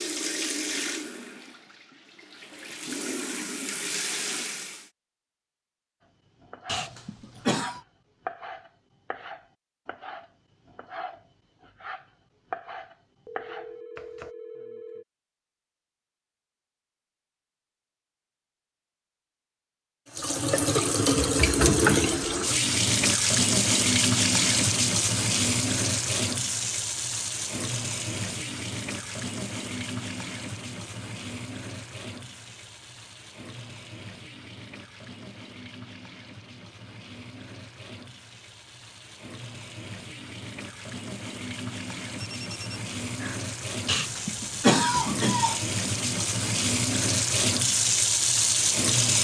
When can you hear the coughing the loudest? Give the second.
45 s.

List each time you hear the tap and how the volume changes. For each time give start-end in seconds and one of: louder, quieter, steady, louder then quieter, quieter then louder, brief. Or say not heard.
0.0-4.9 quieter then louder
20.1-49.1 quieter then louder.